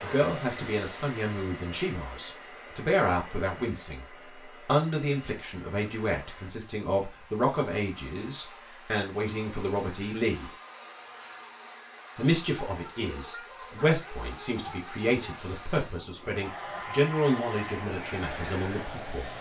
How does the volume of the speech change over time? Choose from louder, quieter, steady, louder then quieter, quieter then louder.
steady.